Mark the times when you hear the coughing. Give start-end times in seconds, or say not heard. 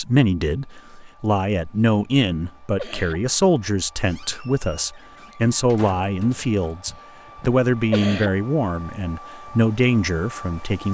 1.8-3.2, 6.8-8.3.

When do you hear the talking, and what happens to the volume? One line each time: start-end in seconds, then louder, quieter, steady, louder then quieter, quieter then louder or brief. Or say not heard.
0.0-10.9 steady.